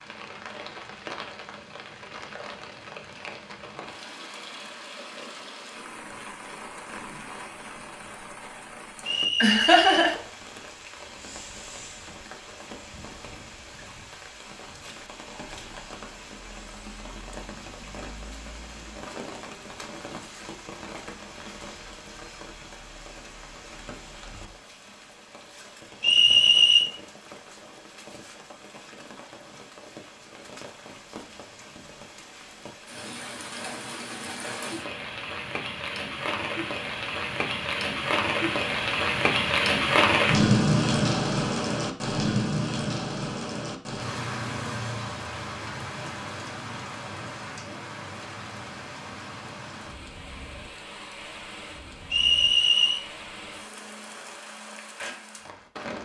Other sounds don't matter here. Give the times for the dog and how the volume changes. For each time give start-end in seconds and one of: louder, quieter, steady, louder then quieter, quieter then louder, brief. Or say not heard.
not heard.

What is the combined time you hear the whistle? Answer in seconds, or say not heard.
3 s.